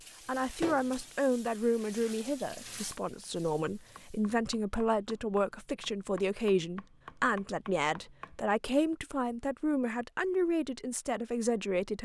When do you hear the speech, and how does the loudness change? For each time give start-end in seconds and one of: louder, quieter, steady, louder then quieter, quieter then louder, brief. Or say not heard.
0.2-12.0 steady.